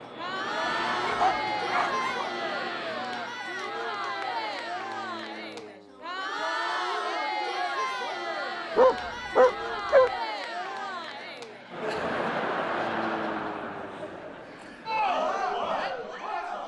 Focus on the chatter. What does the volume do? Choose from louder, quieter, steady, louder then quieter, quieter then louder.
steady.